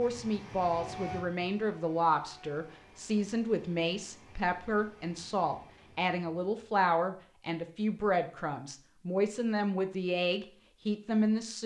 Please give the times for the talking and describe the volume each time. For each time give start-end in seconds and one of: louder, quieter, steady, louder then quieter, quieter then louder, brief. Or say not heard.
0.0-11.6 steady.